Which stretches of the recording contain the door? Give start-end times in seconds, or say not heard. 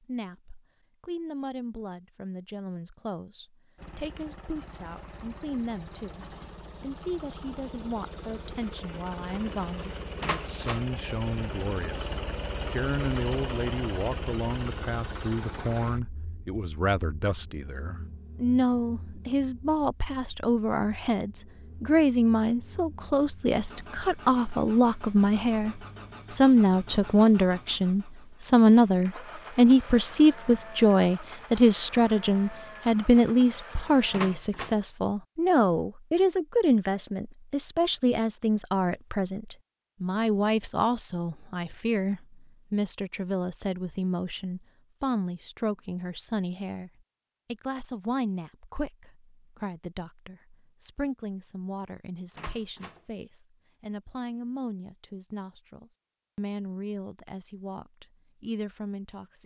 10.2-10.9, 34.1-34.8, 52.3-53.0.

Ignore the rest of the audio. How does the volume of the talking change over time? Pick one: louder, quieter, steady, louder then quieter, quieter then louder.
louder then quieter.